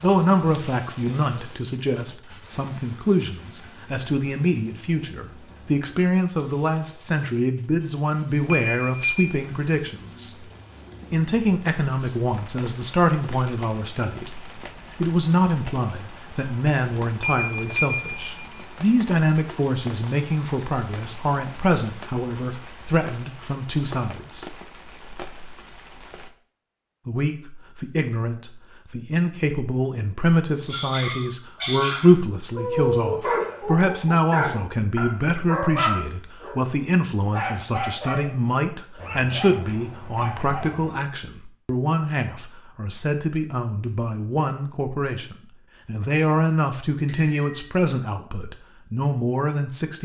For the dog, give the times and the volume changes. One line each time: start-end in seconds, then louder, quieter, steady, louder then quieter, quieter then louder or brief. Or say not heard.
30.6-40.8 quieter.